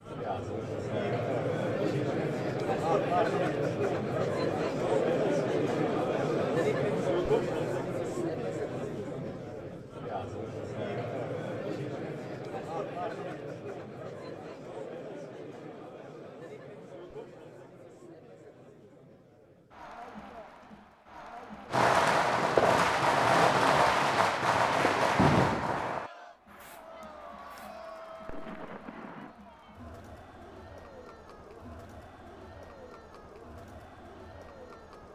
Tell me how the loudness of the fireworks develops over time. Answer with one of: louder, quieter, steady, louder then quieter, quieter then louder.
quieter then louder.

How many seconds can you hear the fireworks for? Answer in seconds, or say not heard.
8 s.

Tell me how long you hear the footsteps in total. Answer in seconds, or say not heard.
not heard.